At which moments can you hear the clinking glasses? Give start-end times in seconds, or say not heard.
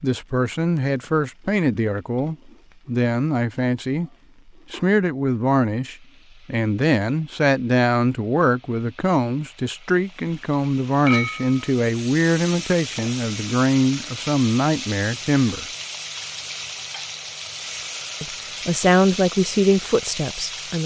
11.1-11.7.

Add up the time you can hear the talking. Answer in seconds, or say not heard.
18 s.